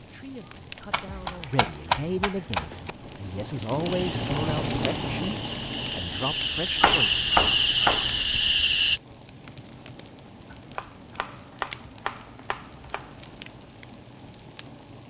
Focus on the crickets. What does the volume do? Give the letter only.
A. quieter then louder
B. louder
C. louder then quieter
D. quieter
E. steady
A.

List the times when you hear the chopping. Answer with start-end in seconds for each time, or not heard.
0.9-3.0, 6.8-8.2, 10.5-13.3.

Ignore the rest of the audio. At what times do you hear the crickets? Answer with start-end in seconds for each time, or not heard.
0.0-9.0.